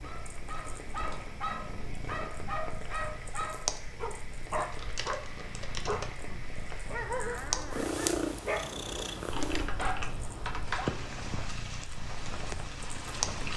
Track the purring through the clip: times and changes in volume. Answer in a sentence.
The purring can be heard from 0.0 to 13.5 s, getting louder then quieter.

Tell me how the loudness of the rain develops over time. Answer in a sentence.
The volume of the rain goes up.